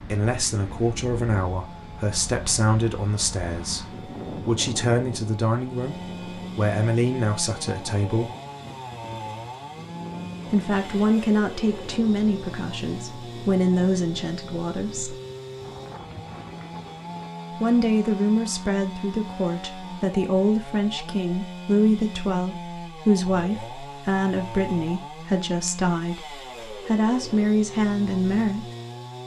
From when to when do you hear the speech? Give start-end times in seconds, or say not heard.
0.1-8.3, 10.5-15.2, 17.6-28.6.